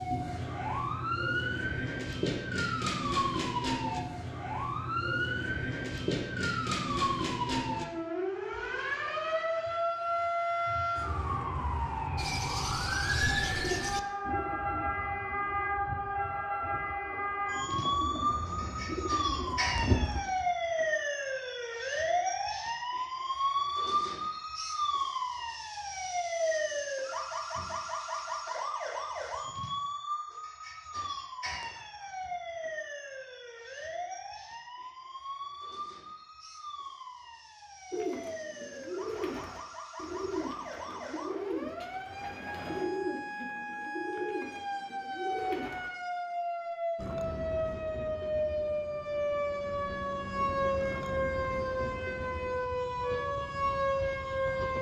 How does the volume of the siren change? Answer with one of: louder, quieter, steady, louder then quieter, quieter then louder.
quieter then louder.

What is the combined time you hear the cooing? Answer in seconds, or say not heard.
16 s.